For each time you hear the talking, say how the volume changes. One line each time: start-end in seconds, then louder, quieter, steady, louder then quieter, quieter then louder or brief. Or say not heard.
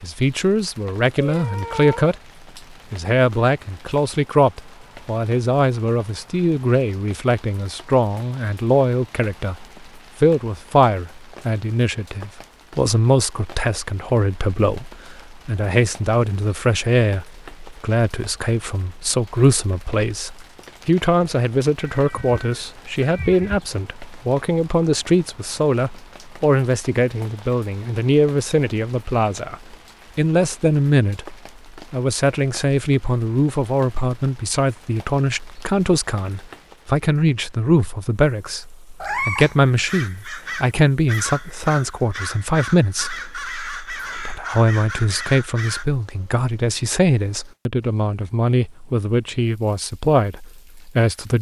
0.0-2.1 brief
2.9-51.3 steady.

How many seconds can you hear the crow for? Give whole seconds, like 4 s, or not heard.
6 s.